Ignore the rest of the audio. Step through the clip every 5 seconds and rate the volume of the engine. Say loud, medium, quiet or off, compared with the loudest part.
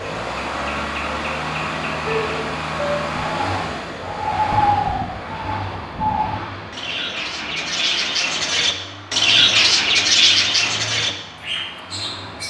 loud, medium, medium.